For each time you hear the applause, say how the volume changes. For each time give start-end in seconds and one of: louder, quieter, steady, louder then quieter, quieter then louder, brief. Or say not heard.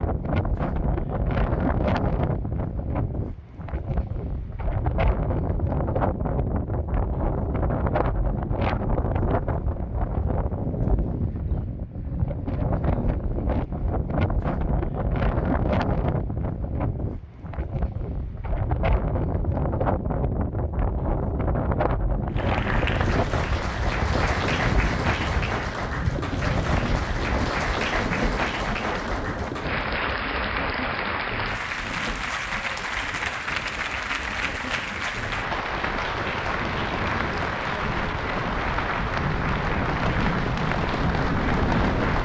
22.3-42.1 steady.